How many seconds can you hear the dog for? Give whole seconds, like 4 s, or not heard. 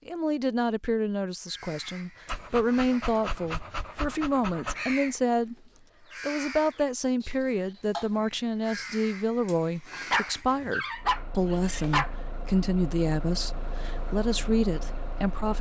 5 s.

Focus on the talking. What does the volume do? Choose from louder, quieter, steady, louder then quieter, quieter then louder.
steady.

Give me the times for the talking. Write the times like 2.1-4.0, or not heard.
0.1-5.5, 6.2-15.5.